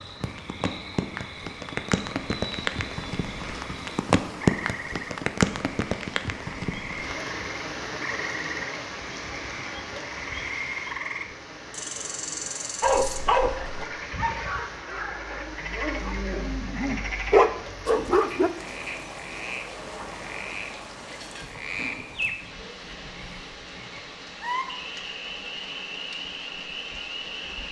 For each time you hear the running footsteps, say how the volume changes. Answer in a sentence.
The running footsteps can't be heard in this clip.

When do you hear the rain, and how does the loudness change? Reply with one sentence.
The rain can be heard from 0.0 to 27.6 s, getting quieter.